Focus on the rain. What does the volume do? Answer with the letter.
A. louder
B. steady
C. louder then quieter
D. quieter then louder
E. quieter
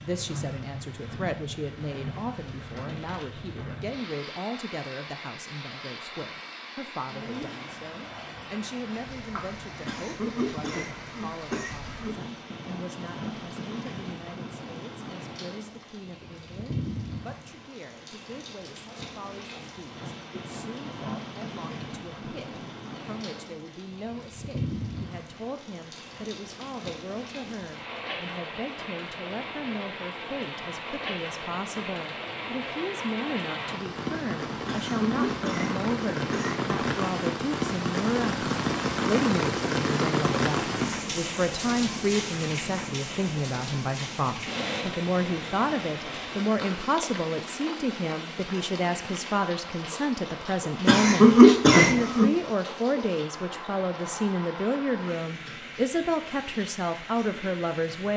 C.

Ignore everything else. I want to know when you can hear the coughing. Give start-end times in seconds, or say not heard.
9.8-12.2, 34.6-36.6, 50.9-52.4.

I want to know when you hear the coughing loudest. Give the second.
51 s.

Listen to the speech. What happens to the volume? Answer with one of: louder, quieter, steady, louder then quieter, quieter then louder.
quieter then louder.